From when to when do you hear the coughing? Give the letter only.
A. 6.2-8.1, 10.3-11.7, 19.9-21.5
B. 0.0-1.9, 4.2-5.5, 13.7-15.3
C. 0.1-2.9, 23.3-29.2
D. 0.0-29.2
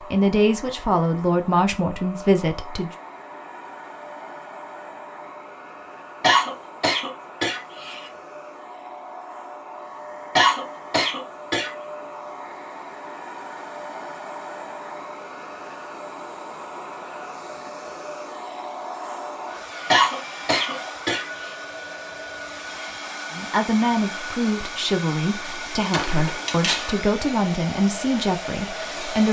A.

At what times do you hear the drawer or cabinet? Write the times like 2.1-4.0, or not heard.
25.9-26.9.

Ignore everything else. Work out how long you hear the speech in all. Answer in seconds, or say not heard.
9 s.